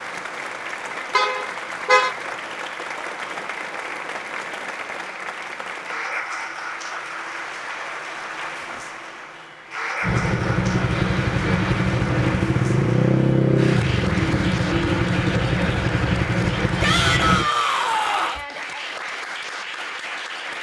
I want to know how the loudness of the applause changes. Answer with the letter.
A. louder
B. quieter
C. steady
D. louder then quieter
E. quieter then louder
C.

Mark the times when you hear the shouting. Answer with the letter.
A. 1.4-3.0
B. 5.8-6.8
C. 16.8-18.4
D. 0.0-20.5
C.